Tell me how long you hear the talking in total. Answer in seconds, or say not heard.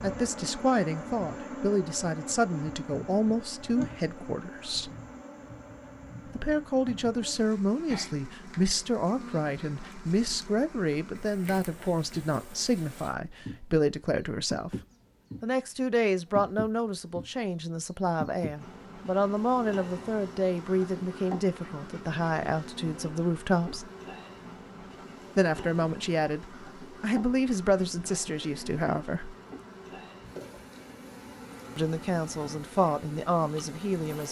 28 s.